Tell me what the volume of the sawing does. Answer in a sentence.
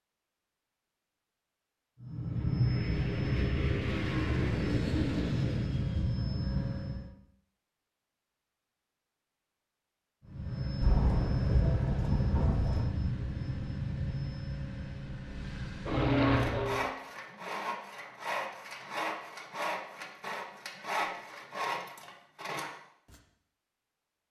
The volume of the sawing stays about the same.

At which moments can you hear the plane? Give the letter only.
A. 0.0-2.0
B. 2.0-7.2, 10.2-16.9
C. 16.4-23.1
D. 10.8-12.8
B.